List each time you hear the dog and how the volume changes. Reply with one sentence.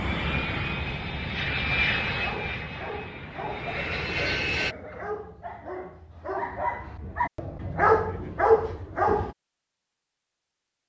The dog can be heard from 2.1 to 9.3 s, getting louder.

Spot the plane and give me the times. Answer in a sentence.
The plane can be heard from 0.0 to 4.8 s.